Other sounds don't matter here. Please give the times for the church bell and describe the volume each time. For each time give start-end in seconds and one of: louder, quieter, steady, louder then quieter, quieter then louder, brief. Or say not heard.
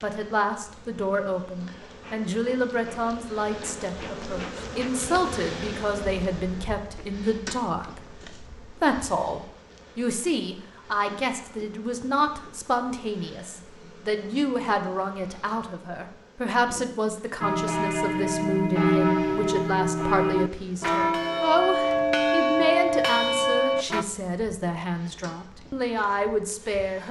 17.4-24.1 steady.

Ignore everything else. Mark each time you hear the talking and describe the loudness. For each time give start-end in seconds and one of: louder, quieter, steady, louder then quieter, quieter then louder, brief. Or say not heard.
0.0-27.0 steady.